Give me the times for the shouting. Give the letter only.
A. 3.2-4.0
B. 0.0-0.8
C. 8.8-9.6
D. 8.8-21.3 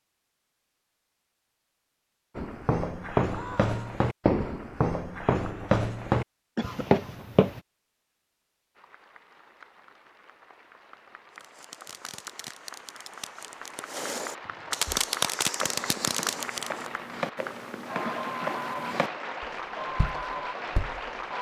A.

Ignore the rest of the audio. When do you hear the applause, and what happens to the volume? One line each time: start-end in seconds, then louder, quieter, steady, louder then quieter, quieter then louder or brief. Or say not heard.
8.8-21.3 louder.